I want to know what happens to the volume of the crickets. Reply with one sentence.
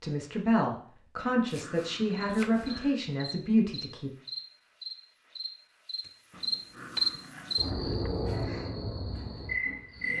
The loudness of the crickets goes up, then down.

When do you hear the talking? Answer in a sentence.
The talking can be heard from 0.0 to 4.1 s.